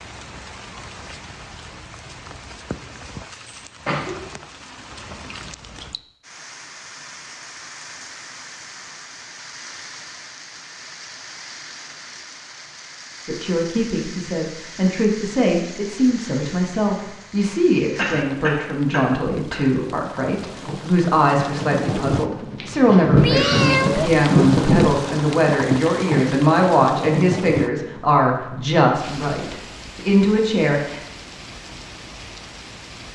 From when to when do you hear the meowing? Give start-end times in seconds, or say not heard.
23.1-24.1.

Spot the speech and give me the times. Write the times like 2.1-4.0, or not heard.
13.2-31.0.